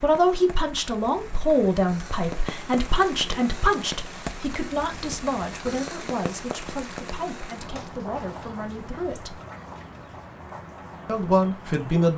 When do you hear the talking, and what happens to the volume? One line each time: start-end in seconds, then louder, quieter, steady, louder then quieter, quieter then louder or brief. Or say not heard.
0.0-9.4 quieter
11.1-12.1 brief.